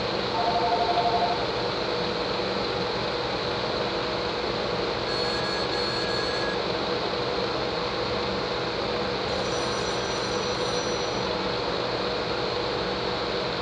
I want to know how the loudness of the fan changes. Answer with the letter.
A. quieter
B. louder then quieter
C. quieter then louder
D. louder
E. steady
E.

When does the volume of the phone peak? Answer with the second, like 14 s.
1 s.